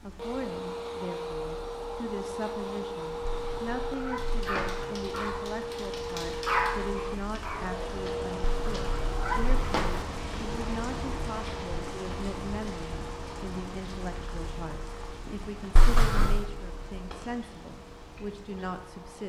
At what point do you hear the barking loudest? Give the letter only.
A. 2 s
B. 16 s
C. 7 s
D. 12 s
C.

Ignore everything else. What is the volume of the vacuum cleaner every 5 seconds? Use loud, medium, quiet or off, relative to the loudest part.
loud, loud, medium, quiet.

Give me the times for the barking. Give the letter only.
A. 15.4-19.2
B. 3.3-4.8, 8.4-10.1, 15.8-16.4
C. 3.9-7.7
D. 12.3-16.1
C.